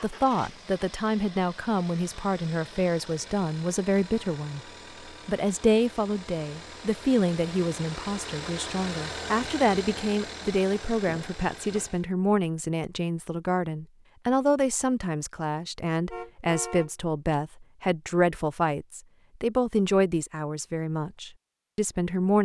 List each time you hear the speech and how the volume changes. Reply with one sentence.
The speech can be heard from 0.0 to 4.6 s, at a steady volume; and from 5.2 to 22.4 s, at a steady volume.